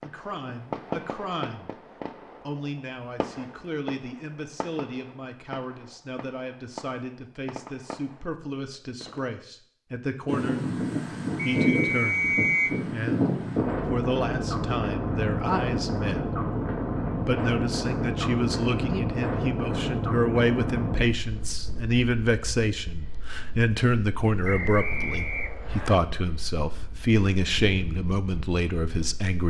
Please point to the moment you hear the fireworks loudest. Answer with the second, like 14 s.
1 s.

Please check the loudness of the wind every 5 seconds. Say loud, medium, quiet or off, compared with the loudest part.
off, off, loud, loud, medium, quiet.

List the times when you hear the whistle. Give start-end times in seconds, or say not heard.
11.6-12.8, 24.4-25.9.